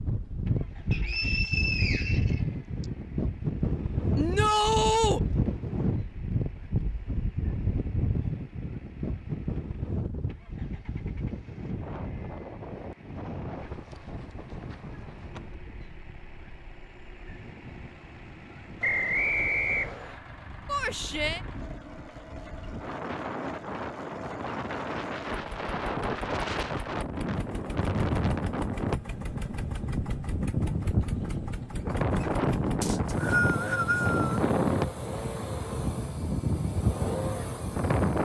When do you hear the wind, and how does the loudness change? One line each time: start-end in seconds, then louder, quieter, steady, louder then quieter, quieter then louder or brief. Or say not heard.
0.0-38.2 quieter then louder.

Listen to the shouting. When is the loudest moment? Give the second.
5 s.